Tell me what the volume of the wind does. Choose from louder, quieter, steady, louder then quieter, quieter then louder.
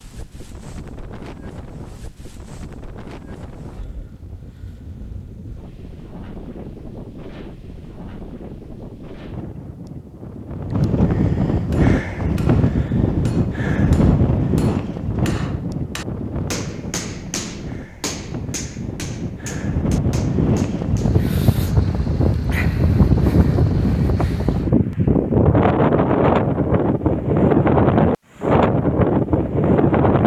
louder.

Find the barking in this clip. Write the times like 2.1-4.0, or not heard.
not heard.